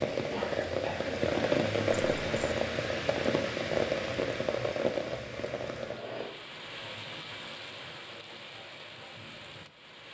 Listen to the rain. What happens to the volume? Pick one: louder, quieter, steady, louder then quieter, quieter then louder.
quieter.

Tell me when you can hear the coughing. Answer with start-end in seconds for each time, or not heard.
0.3-1.2, 5.8-6.3.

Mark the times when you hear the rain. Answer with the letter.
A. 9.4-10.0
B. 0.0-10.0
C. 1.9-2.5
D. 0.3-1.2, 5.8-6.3
B.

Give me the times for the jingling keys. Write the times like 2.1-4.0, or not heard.
1.9-2.5.